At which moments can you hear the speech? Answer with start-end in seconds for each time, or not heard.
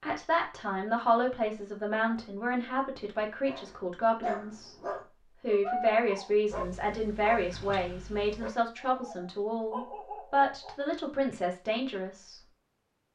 0.0-4.8, 5.4-12.4.